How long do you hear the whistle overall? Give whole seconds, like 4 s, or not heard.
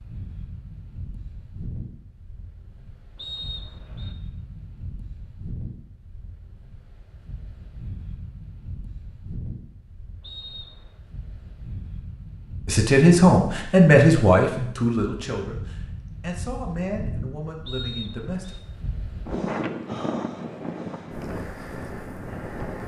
3 s.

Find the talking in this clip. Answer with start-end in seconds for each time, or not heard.
12.7-18.6.